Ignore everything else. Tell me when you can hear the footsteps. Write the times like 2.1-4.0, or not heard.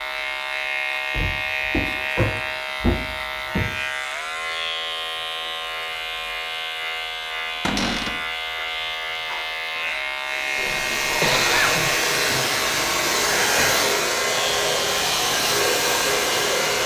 not heard.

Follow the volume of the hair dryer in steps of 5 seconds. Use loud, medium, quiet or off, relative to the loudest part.
off, off, loud, loud.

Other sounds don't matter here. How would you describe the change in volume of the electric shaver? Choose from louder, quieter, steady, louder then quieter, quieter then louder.
steady.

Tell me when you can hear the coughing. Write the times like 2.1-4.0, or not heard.
10.6-12.0.